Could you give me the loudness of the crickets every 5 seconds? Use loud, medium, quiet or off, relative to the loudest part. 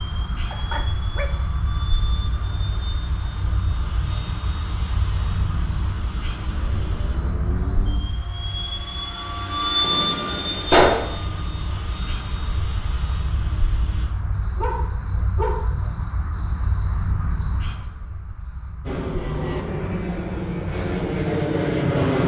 loud, loud, loud, loud, quiet.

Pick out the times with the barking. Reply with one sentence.
The barking can be heard from 0.5 to 1.4 s and from 14.6 to 15.8 s.